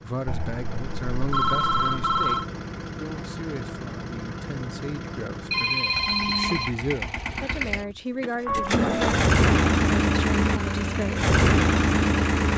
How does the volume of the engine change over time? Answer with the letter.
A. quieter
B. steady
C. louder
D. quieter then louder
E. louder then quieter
C.